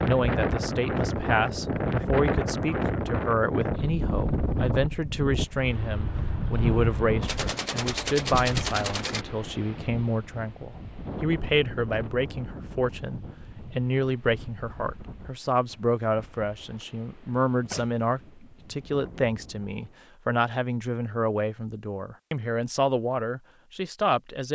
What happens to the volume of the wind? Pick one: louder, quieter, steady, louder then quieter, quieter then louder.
quieter.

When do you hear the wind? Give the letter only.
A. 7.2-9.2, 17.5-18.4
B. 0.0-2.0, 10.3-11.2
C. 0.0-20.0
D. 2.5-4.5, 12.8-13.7
C.